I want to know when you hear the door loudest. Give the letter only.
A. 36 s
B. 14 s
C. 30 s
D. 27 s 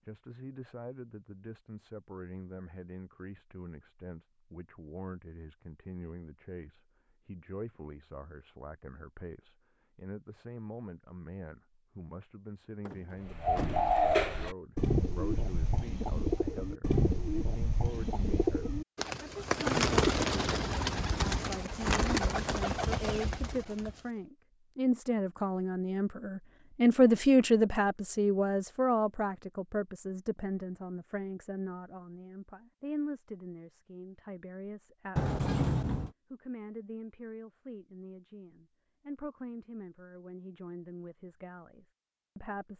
A.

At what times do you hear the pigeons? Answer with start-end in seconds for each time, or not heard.
13.2-23.9.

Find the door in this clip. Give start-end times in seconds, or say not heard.
12.8-14.0, 35.1-36.1.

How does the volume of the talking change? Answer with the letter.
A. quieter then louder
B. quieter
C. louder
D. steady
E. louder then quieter
E.